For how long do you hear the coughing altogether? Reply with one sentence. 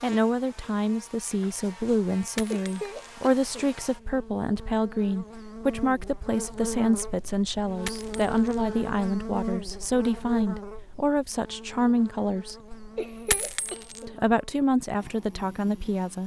The coughing can be heard for 2 seconds in total.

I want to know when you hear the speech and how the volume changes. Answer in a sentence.
You can hear the speech from 0.0 to 12.7 s, at a steady volume; and briefly from 14.1 to 16.2 s.